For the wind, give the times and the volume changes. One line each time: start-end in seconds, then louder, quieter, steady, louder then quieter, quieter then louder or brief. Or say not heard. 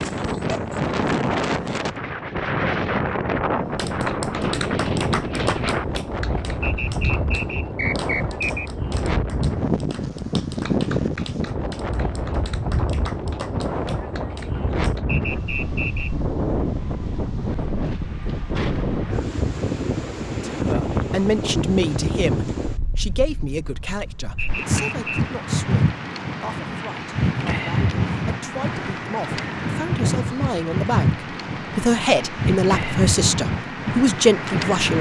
0.0-34.9 steady.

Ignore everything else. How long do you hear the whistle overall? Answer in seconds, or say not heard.
4 s.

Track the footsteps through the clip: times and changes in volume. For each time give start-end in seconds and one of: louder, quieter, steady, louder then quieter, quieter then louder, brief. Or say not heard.
not heard.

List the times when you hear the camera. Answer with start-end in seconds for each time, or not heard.
not heard.